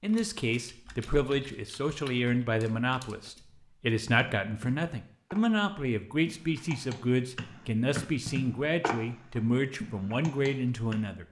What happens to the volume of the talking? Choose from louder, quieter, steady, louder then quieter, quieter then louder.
steady.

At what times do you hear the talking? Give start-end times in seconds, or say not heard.
0.0-11.2.